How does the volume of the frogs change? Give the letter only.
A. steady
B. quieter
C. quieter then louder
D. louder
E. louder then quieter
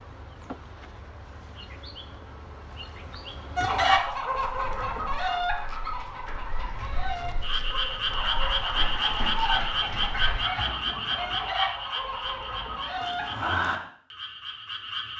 C.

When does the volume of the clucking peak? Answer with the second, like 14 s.
4 s.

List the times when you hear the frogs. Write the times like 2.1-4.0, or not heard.
7.4-15.1.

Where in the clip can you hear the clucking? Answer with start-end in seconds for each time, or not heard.
3.5-13.5.